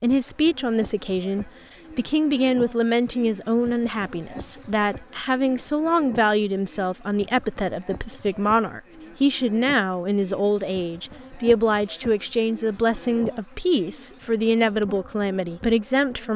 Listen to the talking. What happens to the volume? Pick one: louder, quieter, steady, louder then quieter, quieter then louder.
steady.